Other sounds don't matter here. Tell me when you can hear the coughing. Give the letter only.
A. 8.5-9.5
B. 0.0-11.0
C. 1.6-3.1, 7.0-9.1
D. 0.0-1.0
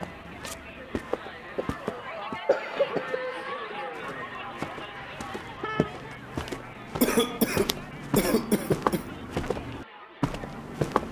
C.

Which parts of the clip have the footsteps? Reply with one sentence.
The footsteps can be heard from 0.0 to 2.4 s and from 3.9 to 11.0 s.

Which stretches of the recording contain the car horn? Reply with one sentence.
The car horn can be heard from 5.0 to 6.0 s.